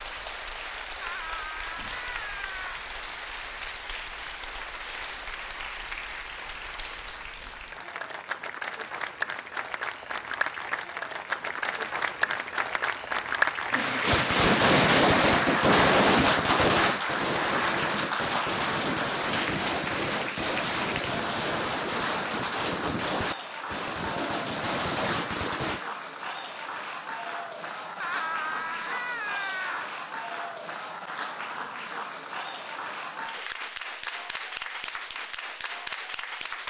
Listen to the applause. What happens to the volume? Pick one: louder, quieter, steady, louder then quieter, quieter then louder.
louder then quieter.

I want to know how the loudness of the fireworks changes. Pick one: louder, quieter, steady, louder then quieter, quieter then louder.
quieter.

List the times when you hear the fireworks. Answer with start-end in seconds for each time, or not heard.
14.0-25.8.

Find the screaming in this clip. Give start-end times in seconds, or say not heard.
1.0-2.9, 28.0-29.9.